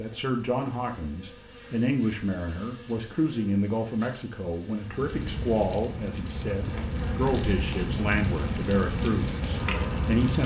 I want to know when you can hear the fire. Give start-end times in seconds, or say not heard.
4.8-10.4.